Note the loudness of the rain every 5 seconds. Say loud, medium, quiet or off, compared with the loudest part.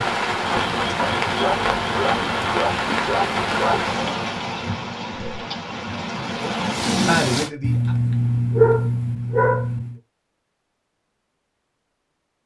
loud, loud, off.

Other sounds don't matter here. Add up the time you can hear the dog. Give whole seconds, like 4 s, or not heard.
5 s.